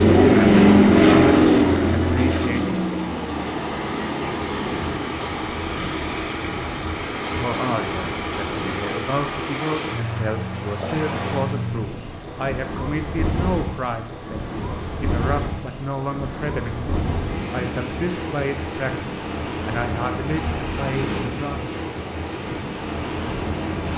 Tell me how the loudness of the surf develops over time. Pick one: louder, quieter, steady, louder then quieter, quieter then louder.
steady.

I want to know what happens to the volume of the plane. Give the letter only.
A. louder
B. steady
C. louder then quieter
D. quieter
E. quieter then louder
D.